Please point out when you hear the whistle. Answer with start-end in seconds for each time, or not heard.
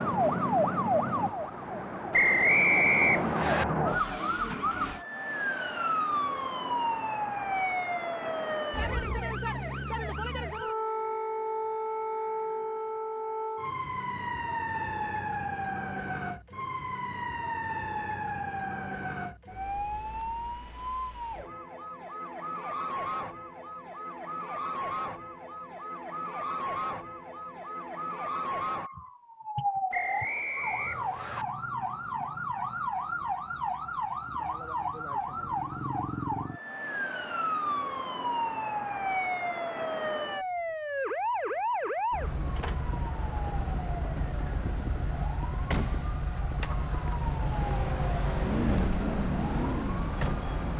2.1-3.6, 29.9-31.4.